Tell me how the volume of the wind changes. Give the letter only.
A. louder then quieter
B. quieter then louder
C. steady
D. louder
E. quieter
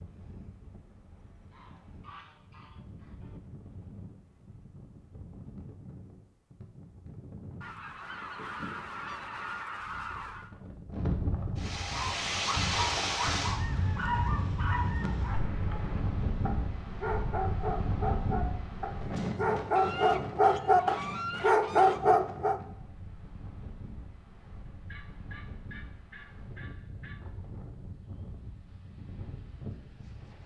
A.